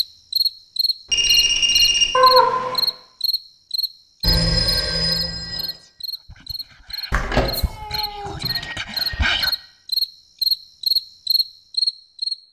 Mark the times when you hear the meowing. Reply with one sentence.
You can hear the meowing from 2.1 to 2.9 s and from 7.1 to 8.5 s.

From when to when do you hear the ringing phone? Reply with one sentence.
The ringing phone can be heard from 1.1 to 2.1 s, from 4.2 to 5.7 s and from 8.4 to 9.6 s.